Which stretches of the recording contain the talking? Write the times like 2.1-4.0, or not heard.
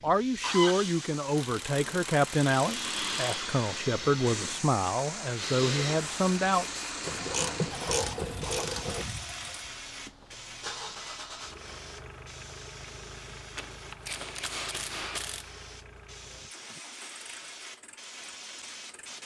0.0-6.7.